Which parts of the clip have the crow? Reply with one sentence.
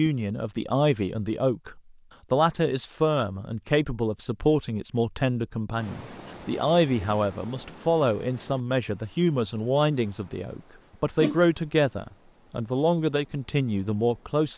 You can't hear the crow here.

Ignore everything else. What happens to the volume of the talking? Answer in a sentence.
The volume of the talking stays about the same.